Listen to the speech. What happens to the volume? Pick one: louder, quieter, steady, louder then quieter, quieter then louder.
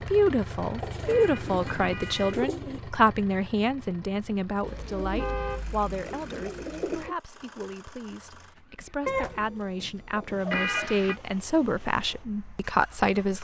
quieter then louder.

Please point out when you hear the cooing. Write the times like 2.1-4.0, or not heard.
0.8-2.8, 4.6-7.2, 9.1-10.9.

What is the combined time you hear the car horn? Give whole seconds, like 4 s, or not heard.
3 s.